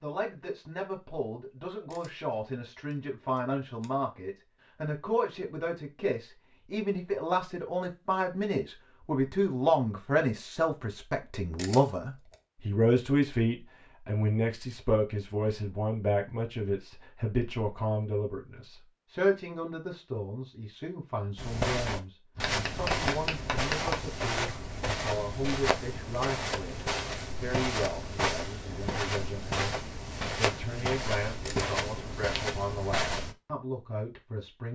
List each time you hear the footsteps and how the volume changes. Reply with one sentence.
The footsteps can be heard from 21.4 to 33.4 s, at a steady volume.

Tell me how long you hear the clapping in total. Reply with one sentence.
The clapping can be heard for 2 seconds in total.